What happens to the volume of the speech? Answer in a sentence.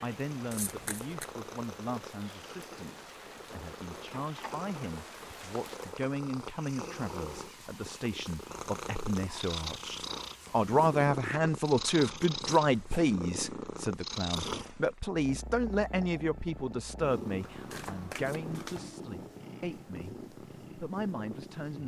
The volume of the speech goes up, then down.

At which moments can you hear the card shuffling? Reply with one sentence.
You can hear the card shuffling from 0.5 to 1.3 s and from 17.4 to 18.9 s.